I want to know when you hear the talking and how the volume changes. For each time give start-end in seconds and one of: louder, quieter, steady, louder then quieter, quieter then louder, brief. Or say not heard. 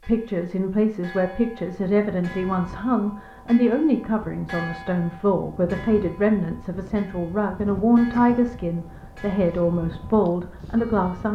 0.1-11.2 steady.